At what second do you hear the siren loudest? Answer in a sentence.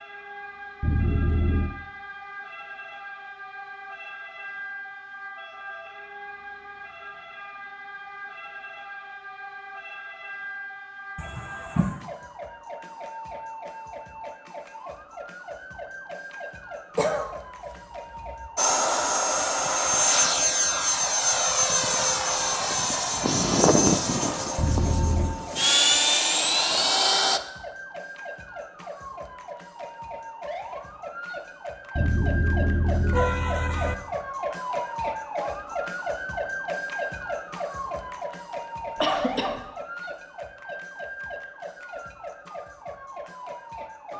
The volume of the siren peaks at 35 seconds.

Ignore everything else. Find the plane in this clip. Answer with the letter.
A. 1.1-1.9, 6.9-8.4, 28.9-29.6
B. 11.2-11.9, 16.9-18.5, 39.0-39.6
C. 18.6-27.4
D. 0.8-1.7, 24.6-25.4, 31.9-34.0
C.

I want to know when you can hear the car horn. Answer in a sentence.
The car horn can be heard from 0.8 to 1.7 s, from 24.6 to 25.4 s and from 31.9 to 34.0 s.